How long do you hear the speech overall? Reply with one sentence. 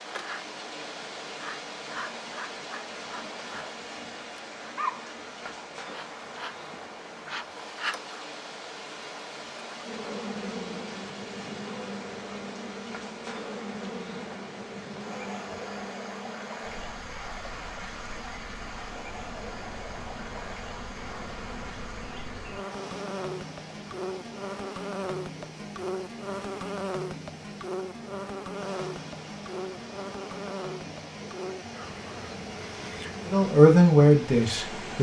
You can hear the speech for 2 seconds altogether.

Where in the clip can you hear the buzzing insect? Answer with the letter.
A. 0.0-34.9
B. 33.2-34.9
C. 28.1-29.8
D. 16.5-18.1
A.